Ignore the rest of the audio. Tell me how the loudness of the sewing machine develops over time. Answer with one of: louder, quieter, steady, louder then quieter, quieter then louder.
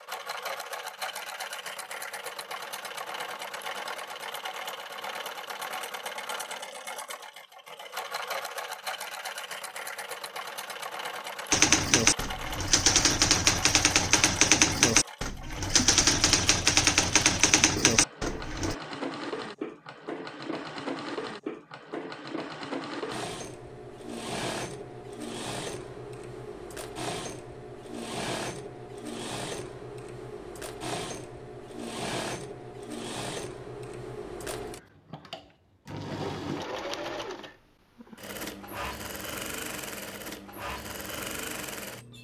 steady.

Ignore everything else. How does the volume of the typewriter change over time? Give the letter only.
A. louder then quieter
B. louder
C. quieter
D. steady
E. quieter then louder
D.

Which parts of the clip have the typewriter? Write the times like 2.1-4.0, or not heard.
11.5-18.8.